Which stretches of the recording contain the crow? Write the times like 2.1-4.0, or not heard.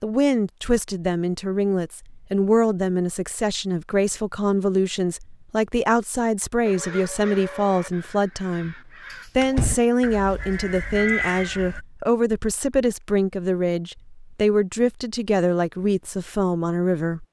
6.7-11.8.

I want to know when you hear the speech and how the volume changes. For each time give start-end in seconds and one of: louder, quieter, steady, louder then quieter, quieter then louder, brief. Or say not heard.
0.0-17.2 steady.